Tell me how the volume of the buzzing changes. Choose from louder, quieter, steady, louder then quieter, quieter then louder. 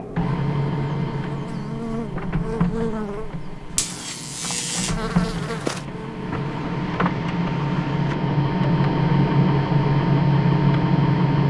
louder.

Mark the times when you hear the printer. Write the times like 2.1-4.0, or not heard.
0.0-11.4.